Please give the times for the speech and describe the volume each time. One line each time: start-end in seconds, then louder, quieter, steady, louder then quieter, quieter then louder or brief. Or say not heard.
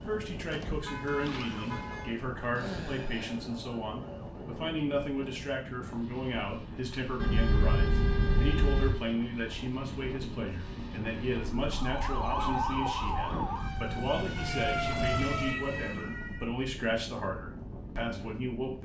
0.0-18.7 steady.